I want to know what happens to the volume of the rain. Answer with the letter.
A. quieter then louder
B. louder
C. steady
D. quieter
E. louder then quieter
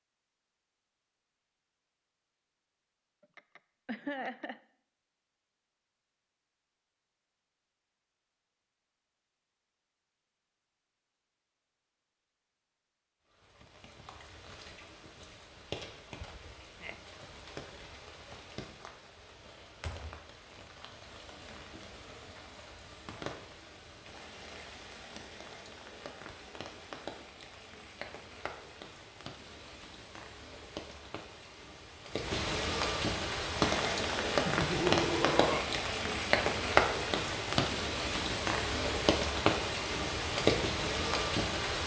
B.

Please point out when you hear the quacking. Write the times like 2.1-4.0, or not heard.
not heard.